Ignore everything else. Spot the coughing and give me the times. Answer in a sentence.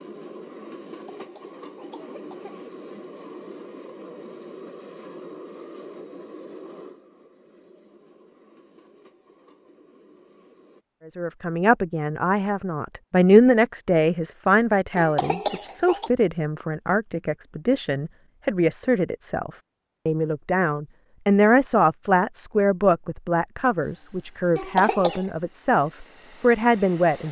The coughing can be heard from 0.8 to 2.6 s, from 14.9 to 16.1 s and from 24.6 to 25.3 s.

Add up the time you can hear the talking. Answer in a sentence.
The talking can be heard for 16 seconds in total.